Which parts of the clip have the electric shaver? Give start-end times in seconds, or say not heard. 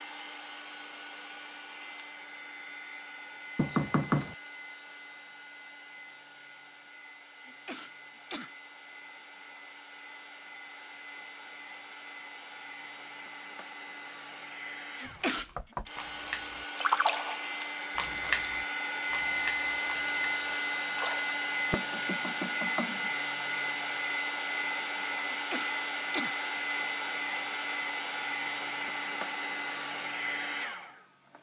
not heard.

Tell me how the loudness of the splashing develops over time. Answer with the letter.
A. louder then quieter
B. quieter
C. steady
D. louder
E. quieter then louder
A.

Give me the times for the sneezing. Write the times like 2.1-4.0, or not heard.
7.4-8.5, 14.9-15.9, 25.3-26.4.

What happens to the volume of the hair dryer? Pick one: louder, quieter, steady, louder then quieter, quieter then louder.
louder.